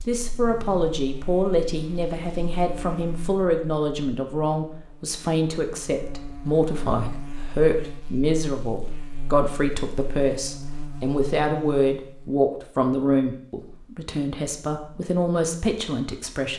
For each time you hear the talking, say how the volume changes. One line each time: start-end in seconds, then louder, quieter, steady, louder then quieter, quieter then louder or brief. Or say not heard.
0.1-16.5 steady.